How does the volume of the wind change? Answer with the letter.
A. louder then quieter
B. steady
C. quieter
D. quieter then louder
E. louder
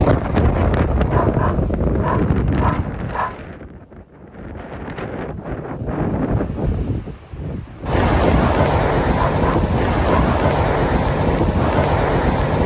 D.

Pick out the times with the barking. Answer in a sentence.
The barking can be heard from 1.1 to 3.4 s and from 9.2 to 10.3 s.